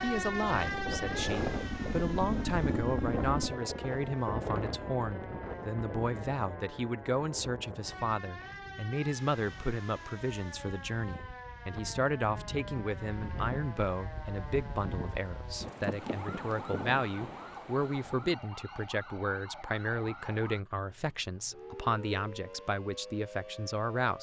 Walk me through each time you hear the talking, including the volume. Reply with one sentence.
You can hear the talking from 0.0 to 24.1 s, at a steady volume.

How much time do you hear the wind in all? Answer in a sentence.
The wind can be heard for 18 seconds in total.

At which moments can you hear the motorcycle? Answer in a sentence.
You can hear the motorcycle from 0.1 to 3.5 s.